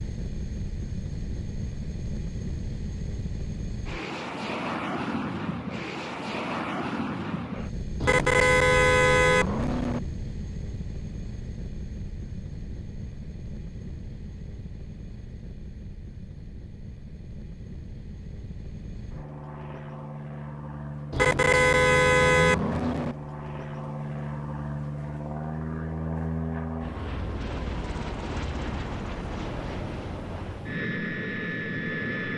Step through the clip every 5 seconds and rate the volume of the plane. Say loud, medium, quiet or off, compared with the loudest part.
loud, loud, medium, medium, loud, loud, loud.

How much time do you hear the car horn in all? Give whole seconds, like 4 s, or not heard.
4 s.